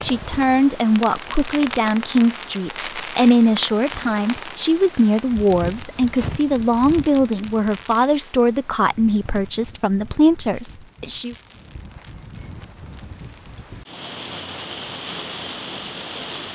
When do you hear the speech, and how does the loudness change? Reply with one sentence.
The speech can be heard from 0.0 to 11.3 s, at a steady volume.